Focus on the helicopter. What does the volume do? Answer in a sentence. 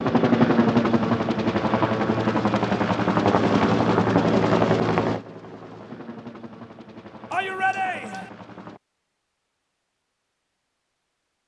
The loudness of the helicopter goes down.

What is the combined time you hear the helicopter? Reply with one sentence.
You can hear the helicopter for 9 seconds altogether.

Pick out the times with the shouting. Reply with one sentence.
The shouting can be heard from 7.3 to 8.3 s.